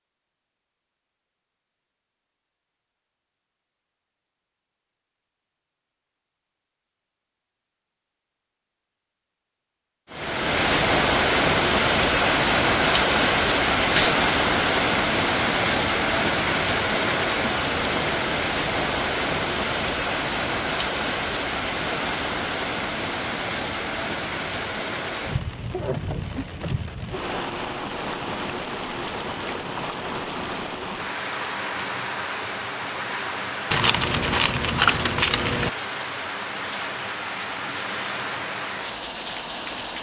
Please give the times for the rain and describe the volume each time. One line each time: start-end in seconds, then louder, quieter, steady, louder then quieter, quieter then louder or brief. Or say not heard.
10.1-39.9 quieter.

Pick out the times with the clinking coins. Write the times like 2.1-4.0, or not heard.
33.7-35.7.